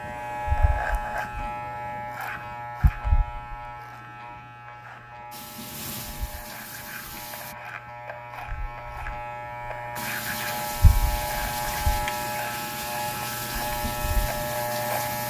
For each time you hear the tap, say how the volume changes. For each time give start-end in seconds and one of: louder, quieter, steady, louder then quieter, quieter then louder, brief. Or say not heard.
5.3-7.5 brief
9.9-15.2 steady.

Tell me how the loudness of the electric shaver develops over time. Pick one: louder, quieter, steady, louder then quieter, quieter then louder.
quieter then louder.